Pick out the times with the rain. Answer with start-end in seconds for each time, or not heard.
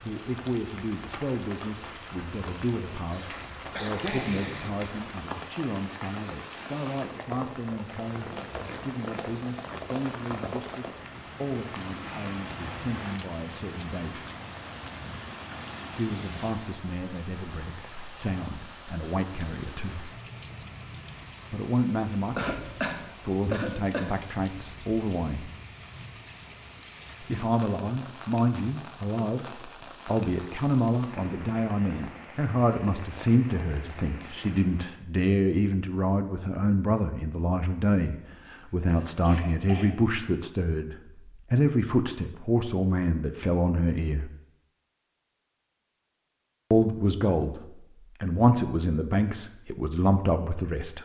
0.0-35.0.